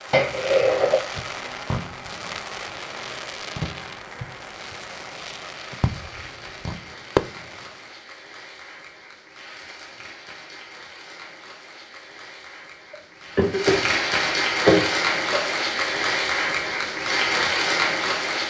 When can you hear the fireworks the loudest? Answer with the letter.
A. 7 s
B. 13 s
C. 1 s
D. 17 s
A.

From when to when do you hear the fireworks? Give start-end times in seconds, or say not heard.
0.0-8.0.